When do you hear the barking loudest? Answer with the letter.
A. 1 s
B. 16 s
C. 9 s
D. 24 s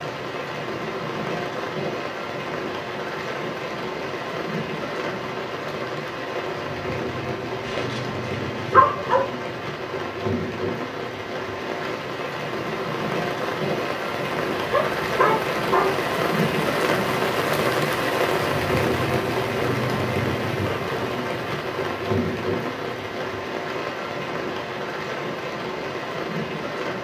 C.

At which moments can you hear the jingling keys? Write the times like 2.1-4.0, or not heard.
not heard.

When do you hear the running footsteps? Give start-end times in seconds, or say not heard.
not heard.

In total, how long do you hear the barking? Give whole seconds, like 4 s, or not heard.
3 s.